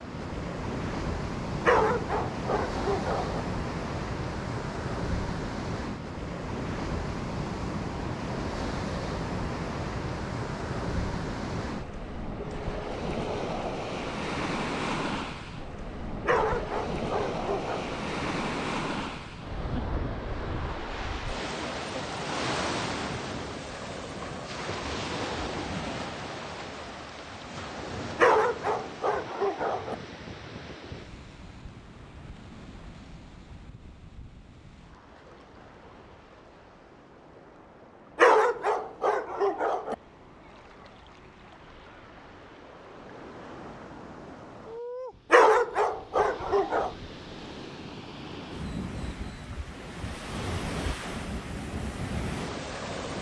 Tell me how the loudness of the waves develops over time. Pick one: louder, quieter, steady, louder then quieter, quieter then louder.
quieter then louder.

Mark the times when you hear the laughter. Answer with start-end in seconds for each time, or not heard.
not heard.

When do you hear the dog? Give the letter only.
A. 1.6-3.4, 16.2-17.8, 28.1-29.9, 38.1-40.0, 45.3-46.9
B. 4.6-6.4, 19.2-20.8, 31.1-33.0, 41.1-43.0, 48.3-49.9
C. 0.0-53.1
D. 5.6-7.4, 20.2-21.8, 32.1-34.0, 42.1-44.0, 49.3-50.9
A.